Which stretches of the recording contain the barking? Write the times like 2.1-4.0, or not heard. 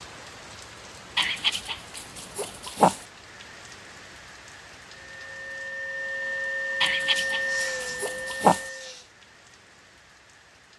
1.1-3.0, 6.8-8.7.